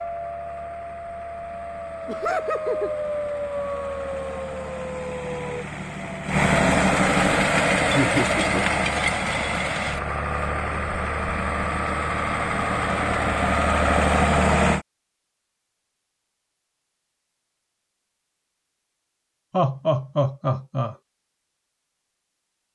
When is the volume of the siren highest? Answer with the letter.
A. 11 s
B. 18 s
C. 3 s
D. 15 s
C.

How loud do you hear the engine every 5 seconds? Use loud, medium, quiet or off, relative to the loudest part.
quiet, loud, loud, off, off.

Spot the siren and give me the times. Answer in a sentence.
You can hear the siren from 0.0 to 5.7 s.